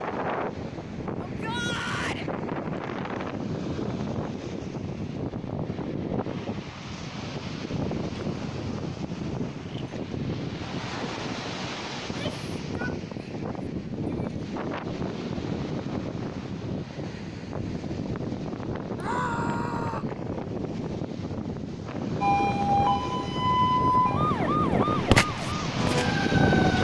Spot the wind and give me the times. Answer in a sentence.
You can hear the wind from 0.0 to 26.7 s.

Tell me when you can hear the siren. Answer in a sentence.
The siren can be heard from 22.2 to 26.7 s.